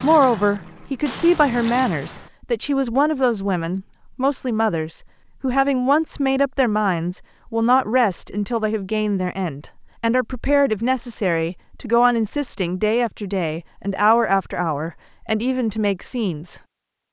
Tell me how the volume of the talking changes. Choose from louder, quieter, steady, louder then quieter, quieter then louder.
steady.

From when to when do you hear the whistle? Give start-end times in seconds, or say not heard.
not heard.